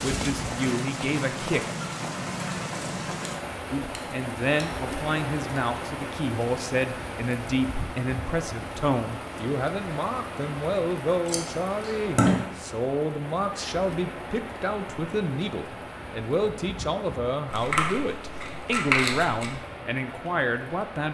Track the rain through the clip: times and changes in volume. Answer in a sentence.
You can hear the rain from 0.0 to 21.1 s, getting quieter.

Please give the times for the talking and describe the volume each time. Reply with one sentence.
You can hear the talking briefly from 0.0 to 1.6 s; and from 3.7 to 21.1 s, at a steady volume.